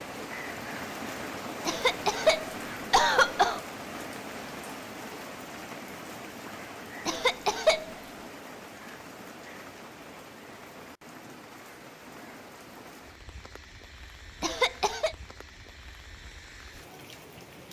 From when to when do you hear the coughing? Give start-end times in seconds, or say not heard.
1.6-3.6, 7.0-8.0, 14.4-15.2.